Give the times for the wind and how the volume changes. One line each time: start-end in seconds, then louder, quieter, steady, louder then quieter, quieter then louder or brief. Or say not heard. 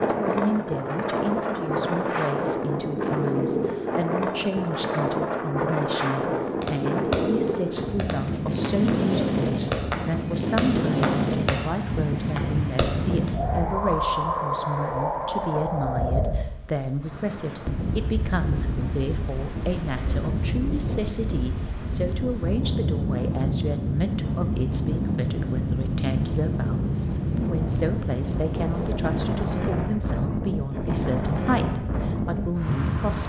0.0-33.2 steady.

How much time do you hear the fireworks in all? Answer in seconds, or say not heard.
7 s.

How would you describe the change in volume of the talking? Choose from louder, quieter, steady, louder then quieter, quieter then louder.
steady.